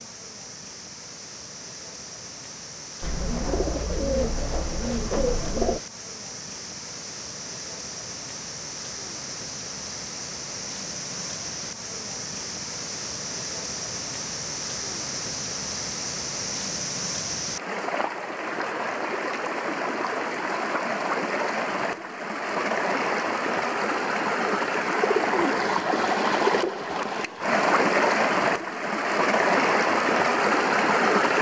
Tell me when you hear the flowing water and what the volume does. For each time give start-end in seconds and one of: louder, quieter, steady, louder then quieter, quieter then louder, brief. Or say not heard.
0.0-31.3 louder.